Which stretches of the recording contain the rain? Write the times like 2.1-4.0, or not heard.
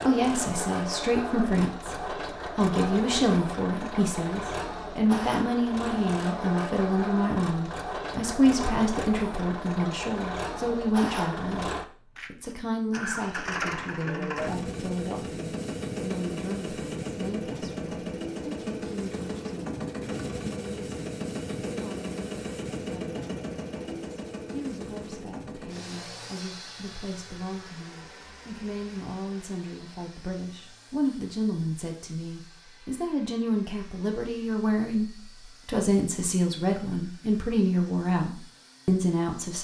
not heard.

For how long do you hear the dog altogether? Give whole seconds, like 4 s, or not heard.
not heard.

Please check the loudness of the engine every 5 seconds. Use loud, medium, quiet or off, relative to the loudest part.
loud, loud, loud, loud, loud, medium, quiet, quiet.